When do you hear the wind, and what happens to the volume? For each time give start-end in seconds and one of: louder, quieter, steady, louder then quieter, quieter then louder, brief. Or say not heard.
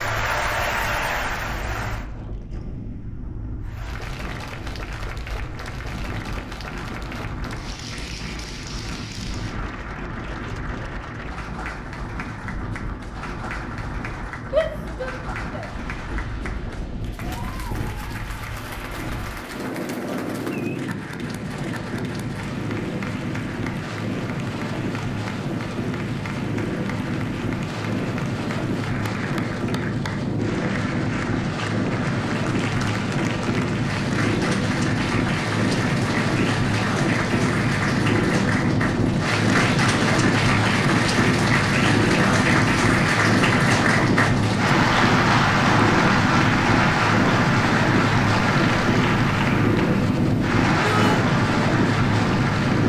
0.0-52.8 louder.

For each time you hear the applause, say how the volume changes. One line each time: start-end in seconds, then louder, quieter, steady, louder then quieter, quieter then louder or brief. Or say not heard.
0.0-2.0 brief
3.6-52.8 louder.